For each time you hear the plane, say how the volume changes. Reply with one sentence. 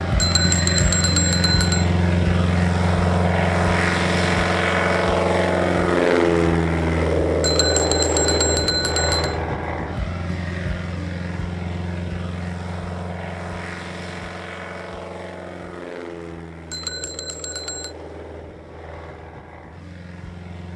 The plane can be heard from 0.0 to 20.7 s, getting quieter.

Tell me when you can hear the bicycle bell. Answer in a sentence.
You can hear the bicycle bell from 0.2 to 1.9 s, from 7.4 to 9.3 s and from 16.7 to 17.9 s.